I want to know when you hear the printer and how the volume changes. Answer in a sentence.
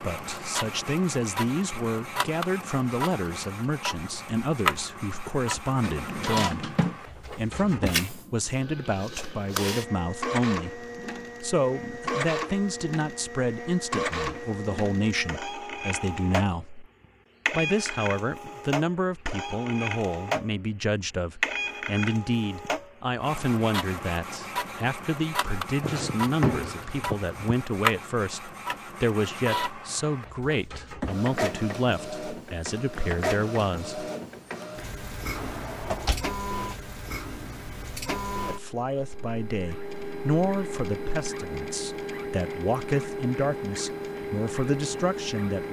You can hear the printer from 0.0 to 45.6 s, at a steady volume.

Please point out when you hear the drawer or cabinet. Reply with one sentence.
You can hear the drawer or cabinet from 5.8 to 7.8 s, from 25.8 to 27.6 s and from 35.4 to 36.8 s.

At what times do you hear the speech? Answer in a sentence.
You can hear the speech from 0.0 to 16.9 s, from 17.5 to 34.1 s and from 38.5 to 45.6 s.